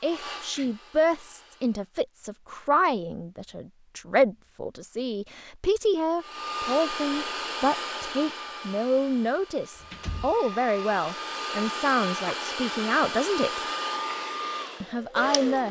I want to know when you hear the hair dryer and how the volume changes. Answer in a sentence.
You can hear the hair dryer briefly from 0.0 to 1.9 s; and from 6.2 to 15.6 s, getting quieter then louder.